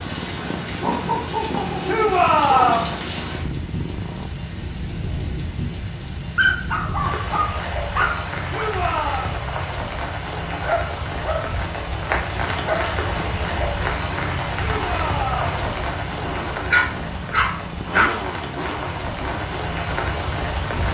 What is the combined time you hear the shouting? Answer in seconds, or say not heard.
3 s.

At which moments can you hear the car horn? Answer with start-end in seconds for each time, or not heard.
not heard.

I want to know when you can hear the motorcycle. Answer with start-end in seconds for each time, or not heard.
0.0-4.3, 13.2-20.8.